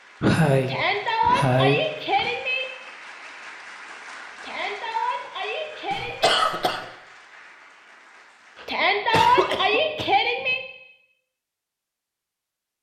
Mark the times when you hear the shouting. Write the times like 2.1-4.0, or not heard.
0.7-2.6, 4.4-6.3, 8.7-10.6.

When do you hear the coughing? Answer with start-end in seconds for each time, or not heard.
0.2-2.3, 5.9-6.8, 8.6-10.1.